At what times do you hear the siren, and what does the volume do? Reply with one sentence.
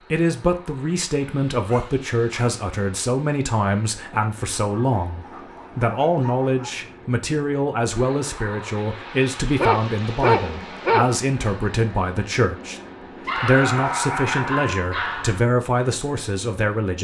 The siren can't be heard in this clip.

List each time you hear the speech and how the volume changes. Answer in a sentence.
The speech can be heard from 0.1 to 16.9 s, at a steady volume.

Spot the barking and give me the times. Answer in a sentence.
You can hear the barking from 1.6 to 2.6 s, from 4.6 to 6.8 s, from 9.6 to 11.2 s and from 13.2 to 15.4 s.